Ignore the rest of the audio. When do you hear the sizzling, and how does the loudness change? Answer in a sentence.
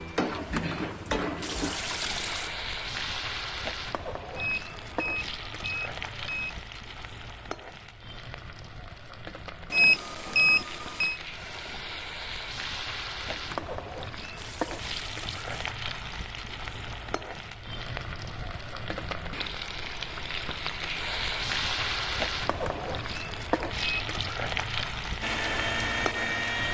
The sizzling can be heard from 0.0 to 26.7 s, getting quieter then louder.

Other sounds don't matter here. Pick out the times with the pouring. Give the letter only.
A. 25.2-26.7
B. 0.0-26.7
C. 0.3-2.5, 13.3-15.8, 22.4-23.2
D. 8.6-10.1
C.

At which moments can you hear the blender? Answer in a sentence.
You can hear the blender from 25.2 to 26.7 s.